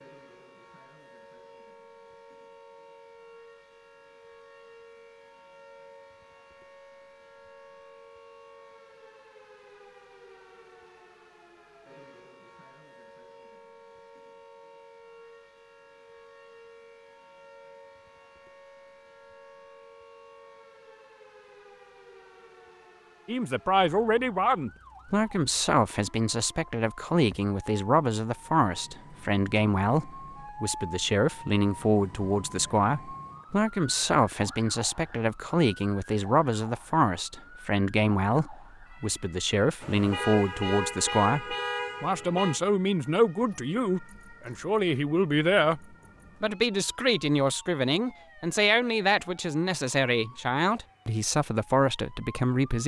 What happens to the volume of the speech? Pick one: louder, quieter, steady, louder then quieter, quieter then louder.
steady.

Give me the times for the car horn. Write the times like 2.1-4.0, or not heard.
39.8-42.6.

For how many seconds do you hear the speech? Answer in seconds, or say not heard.
29 s.